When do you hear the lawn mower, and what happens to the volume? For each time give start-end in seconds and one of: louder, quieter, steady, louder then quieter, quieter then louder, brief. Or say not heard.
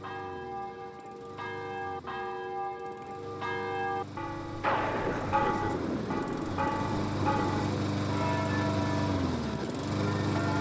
0.0-10.5 louder.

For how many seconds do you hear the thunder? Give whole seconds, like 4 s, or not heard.
3 s.